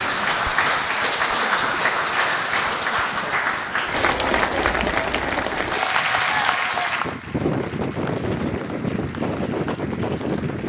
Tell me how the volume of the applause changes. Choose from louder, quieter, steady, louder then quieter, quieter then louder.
quieter.